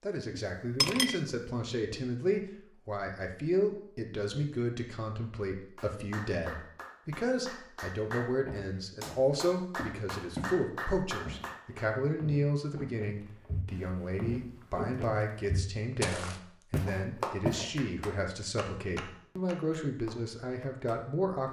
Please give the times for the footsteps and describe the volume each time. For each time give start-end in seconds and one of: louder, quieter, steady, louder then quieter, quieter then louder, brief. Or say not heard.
8.4-10.6 brief
11.2-17.6 louder.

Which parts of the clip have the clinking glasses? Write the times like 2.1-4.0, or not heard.
0.3-1.2.